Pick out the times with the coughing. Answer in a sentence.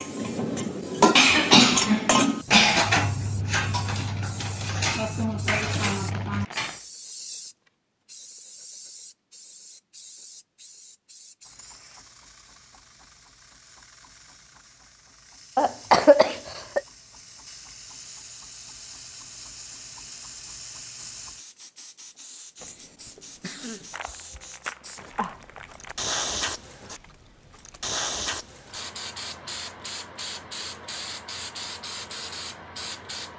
You can hear the coughing from 1.1 to 2.9 s, from 15.6 to 16.8 s and from 22.6 to 23.9 s.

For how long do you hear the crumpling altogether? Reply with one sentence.
The crumpling can be heard for 3 seconds in total.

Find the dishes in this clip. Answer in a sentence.
You can hear the dishes from 0.0 to 6.8 s.